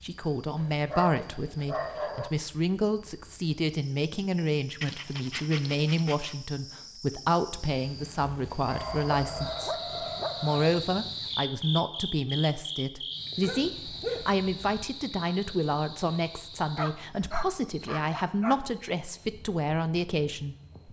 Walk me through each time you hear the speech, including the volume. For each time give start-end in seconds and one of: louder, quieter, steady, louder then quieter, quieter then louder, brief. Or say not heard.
0.0-9.8 steady
10.4-20.6 steady.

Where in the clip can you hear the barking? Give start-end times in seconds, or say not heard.
0.6-2.3, 4.8-6.3, 8.7-10.7, 13.4-14.8, 16.8-18.6.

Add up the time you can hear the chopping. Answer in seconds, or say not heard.
not heard.